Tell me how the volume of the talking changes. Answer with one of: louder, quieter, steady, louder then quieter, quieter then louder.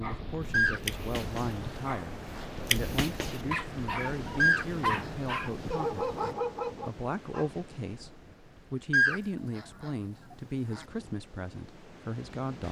steady.